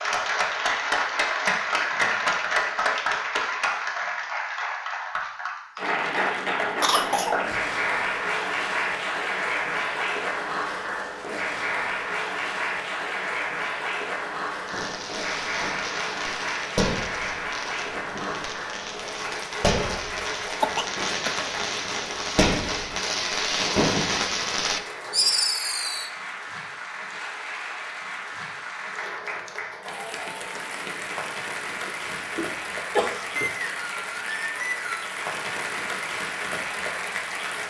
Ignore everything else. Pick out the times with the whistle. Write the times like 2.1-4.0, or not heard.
33.4-35.1.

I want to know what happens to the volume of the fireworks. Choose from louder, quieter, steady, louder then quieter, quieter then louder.
quieter then louder.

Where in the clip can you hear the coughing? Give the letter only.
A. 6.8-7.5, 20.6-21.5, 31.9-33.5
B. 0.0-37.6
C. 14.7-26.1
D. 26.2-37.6
A.